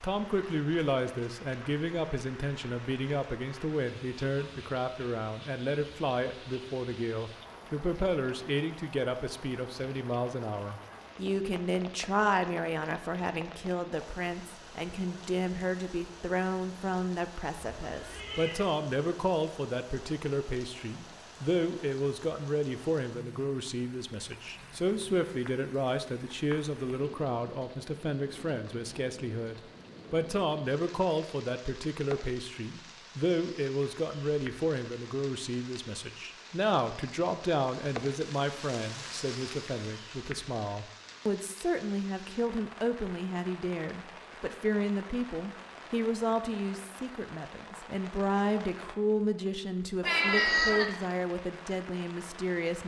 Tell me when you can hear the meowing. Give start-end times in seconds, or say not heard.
17.8-18.6, 50.0-50.9.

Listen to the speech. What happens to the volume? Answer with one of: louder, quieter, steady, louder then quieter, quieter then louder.
steady.